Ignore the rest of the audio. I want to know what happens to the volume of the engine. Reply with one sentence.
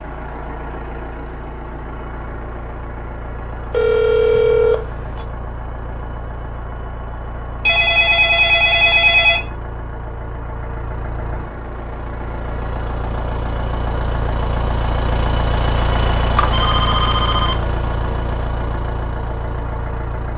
The volume of the engine goes up.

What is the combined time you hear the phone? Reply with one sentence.
You can hear the phone for 5 seconds altogether.